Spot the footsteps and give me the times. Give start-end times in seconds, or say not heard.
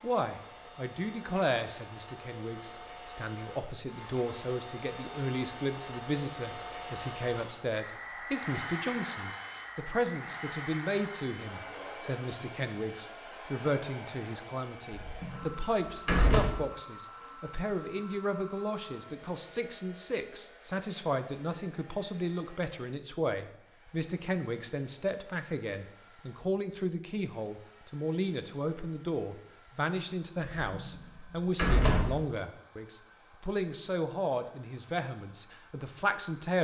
not heard.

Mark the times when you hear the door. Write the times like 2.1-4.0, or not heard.
14.9-16.6, 30.6-32.1.